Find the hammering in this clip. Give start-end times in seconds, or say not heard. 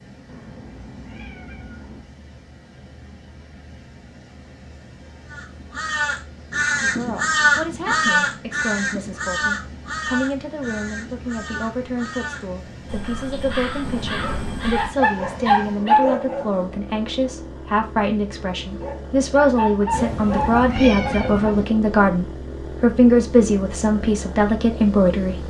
not heard.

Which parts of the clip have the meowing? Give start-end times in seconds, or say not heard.
0.2-2.0, 13.8-14.7, 19.9-21.6.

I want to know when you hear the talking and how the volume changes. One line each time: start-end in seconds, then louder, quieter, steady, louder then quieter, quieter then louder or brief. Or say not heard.
6.8-25.4 louder.